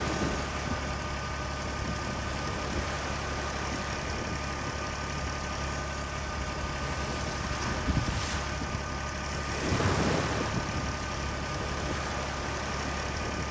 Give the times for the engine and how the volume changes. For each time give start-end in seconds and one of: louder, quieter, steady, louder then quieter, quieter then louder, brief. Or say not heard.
0.0-13.4 steady.